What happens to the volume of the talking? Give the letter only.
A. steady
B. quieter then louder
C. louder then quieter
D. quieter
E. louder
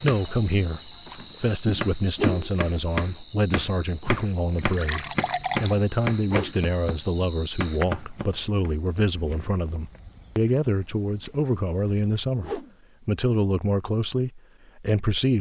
A.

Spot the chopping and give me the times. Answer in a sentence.
The chopping can be heard from 0.0 to 8.7 s.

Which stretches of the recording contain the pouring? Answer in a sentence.
The pouring can be heard from 4.5 to 5.8 s.